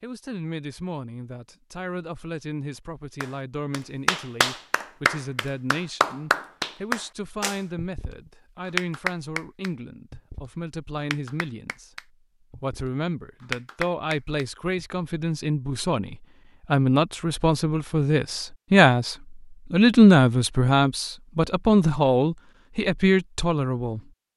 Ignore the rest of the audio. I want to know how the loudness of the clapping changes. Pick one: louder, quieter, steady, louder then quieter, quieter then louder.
quieter then louder.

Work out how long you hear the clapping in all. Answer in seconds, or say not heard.
11 s.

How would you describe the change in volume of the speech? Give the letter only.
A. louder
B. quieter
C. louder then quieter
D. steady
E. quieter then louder
A.